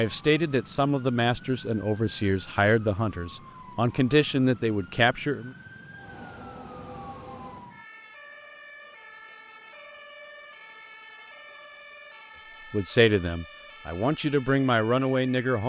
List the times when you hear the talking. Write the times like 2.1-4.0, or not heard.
0.0-5.5, 12.7-15.6.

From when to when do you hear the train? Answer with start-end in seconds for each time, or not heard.
5.9-7.8.